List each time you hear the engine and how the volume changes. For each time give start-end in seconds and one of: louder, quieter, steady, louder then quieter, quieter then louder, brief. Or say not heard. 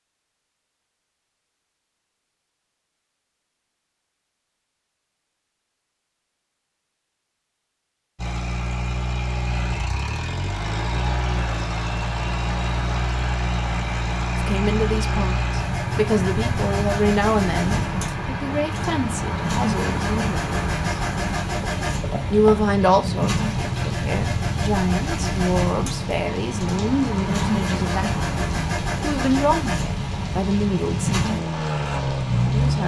8.2-32.8 steady.